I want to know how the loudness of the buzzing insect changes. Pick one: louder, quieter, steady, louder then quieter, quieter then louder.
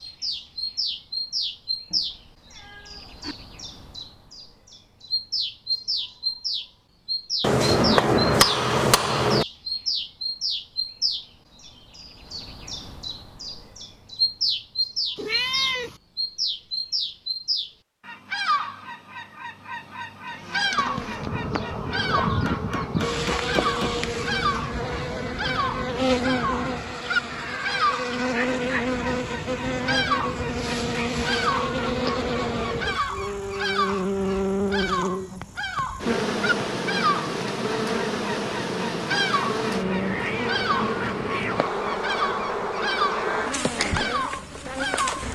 steady.